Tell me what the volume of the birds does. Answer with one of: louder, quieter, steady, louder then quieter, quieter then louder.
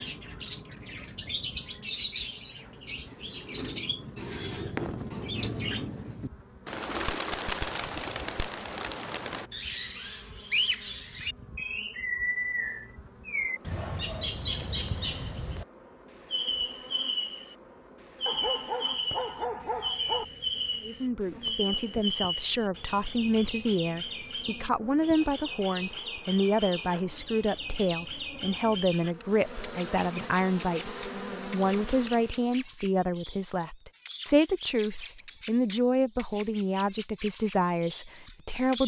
quieter.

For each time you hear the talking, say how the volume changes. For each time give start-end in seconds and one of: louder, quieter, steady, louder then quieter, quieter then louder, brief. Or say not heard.
20.9-38.8 steady.